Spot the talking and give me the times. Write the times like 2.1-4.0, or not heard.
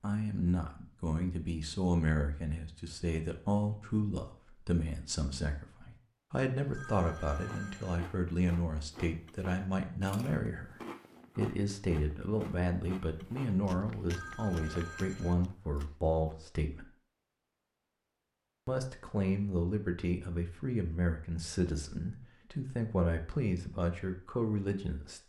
0.0-10.8, 11.3-16.9, 18.6-25.2.